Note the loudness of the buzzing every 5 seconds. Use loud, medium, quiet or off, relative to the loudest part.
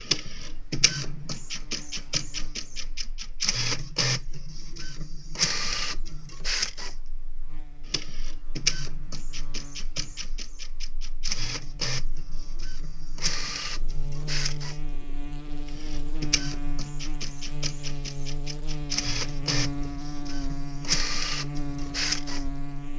quiet, quiet, medium, loud, loud.